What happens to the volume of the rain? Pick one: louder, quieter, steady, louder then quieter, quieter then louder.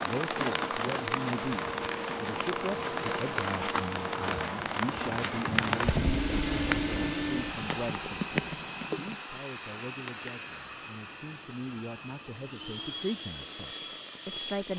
quieter.